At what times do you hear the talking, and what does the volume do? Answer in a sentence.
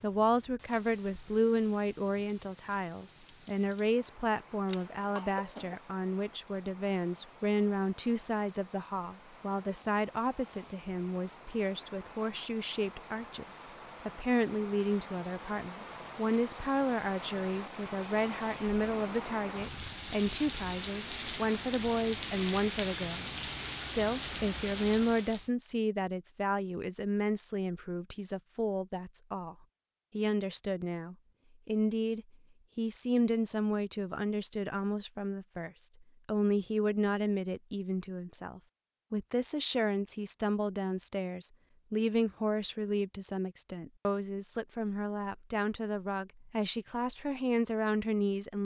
The talking can be heard from 0.0 to 48.5 s, at a steady volume.